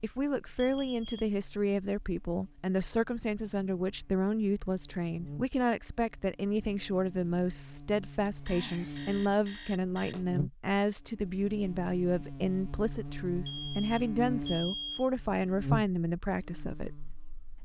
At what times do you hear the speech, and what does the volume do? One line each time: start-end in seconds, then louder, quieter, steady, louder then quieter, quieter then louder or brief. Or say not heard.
0.0-17.6 steady.